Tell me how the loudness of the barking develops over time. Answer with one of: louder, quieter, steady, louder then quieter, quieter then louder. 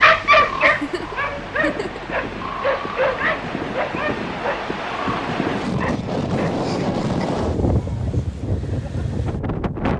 quieter.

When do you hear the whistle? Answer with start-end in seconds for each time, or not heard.
not heard.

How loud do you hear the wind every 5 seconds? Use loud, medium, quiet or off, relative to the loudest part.
medium, loud.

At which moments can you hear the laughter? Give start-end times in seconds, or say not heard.
0.6-2.0, 6.6-7.5.